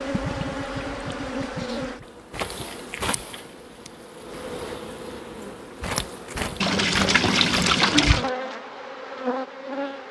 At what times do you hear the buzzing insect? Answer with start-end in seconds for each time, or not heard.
0.0-10.0.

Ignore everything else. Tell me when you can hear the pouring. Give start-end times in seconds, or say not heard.
0.1-2.0, 6.6-8.3.